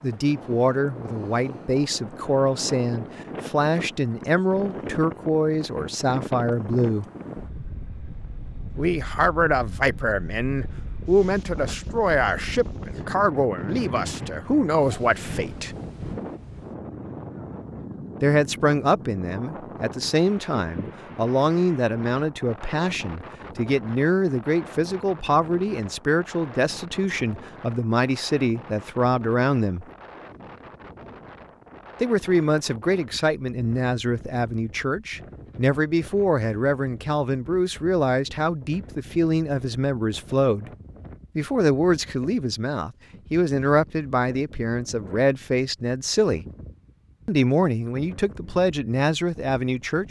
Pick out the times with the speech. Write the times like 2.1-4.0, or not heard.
0.0-7.0, 8.8-15.8, 18.2-29.9, 32.0-40.7, 41.4-46.5, 47.2-50.0.